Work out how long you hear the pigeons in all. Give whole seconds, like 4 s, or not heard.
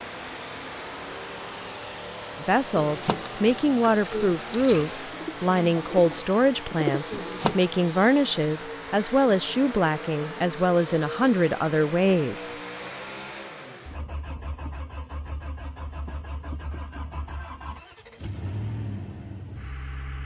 5 s.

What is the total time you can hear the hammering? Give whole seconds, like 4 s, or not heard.
not heard.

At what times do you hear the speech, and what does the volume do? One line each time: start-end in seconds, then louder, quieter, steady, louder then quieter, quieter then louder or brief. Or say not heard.
2.4-12.6 steady.